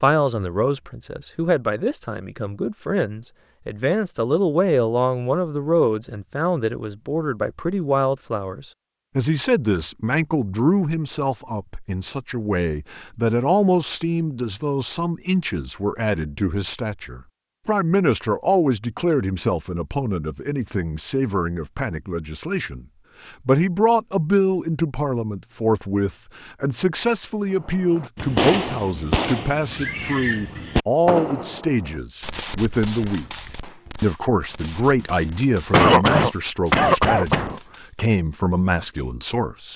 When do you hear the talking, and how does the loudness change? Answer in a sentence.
You can hear the talking from 0.0 to 39.7 s, at a steady volume.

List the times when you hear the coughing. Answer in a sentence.
You can hear the coughing from 35.7 to 37.6 s.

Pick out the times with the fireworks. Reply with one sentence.
You can hear the fireworks from 27.5 to 38.0 s.